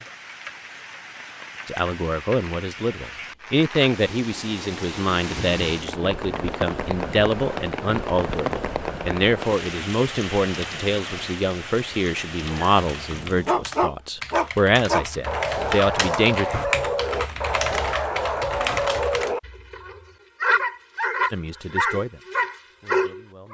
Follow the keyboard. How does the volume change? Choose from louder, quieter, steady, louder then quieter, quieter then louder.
louder.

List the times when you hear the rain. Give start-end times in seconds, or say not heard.
0.0-13.7.